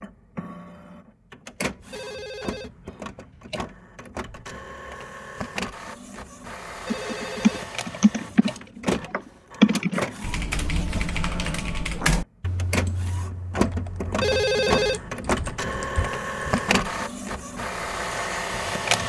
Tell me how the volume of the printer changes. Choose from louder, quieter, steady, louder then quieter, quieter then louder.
louder.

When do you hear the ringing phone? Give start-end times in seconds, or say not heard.
1.9-3.6, 6.8-8.6, 14.2-15.1.